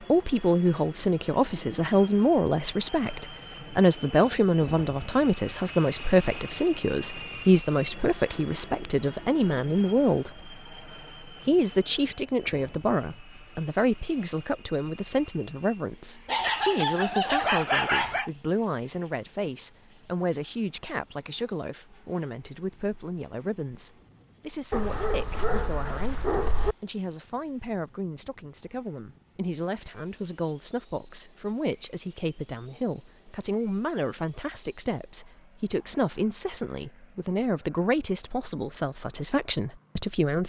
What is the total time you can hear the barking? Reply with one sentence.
The barking can be heard for 4 seconds in total.